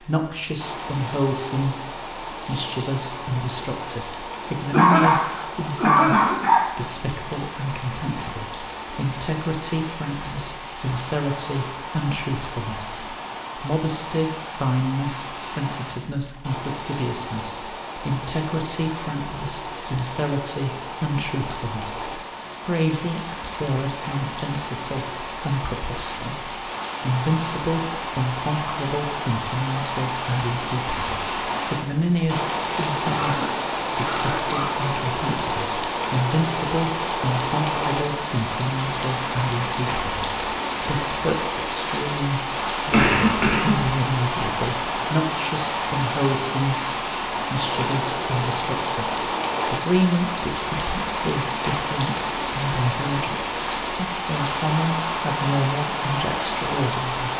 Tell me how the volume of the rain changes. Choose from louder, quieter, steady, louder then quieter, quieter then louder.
louder.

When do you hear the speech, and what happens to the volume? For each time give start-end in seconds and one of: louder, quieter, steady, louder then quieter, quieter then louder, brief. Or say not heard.
0.0-57.3 steady.